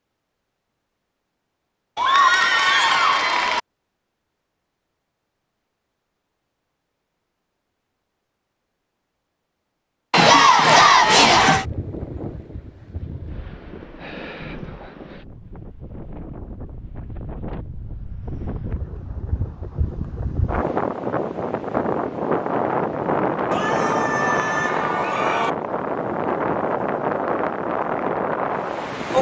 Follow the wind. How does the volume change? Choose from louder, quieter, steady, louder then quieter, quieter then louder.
louder.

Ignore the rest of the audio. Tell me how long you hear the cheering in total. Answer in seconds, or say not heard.
5 s.